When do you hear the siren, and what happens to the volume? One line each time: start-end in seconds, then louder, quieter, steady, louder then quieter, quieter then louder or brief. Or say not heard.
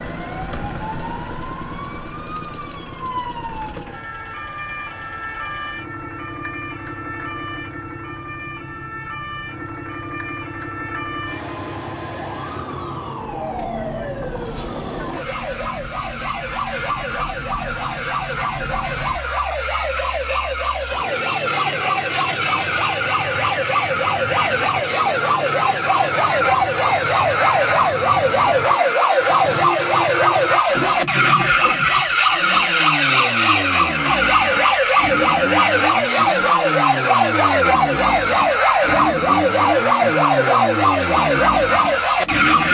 0.0-42.7 louder.